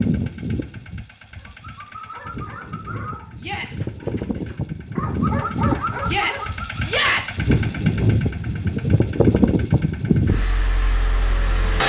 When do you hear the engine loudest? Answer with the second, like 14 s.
10 s.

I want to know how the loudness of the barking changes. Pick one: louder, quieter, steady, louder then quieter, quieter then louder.
quieter then louder.